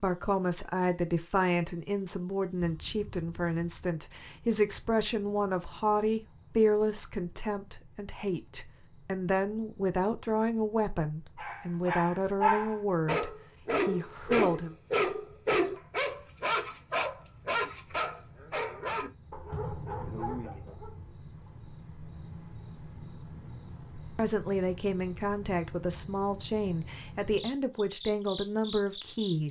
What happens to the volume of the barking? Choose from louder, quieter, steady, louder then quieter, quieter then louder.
quieter.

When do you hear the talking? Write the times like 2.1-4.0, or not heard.
0.0-14.8, 24.1-29.4.